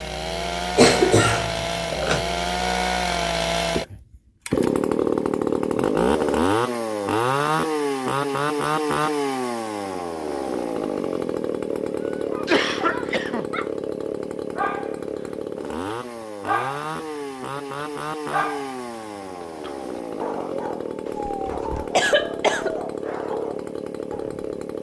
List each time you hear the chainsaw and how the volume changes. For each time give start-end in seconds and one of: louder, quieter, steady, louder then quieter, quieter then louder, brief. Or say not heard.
0.0-24.7 quieter.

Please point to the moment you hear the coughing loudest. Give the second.
1 s.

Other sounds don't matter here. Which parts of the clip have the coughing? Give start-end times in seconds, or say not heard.
0.8-2.2, 12.4-13.4, 21.1-22.8.